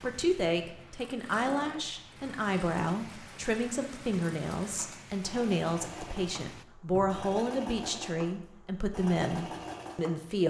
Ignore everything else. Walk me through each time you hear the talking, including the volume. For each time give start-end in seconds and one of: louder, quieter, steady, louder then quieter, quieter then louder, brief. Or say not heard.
0.0-10.4 steady.